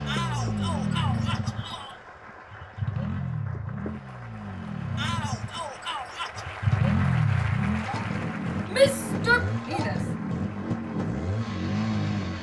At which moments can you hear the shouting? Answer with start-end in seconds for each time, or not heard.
0.1-1.9, 5.0-6.5, 8.7-10.0.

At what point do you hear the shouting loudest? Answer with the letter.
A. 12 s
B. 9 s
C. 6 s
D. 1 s
B.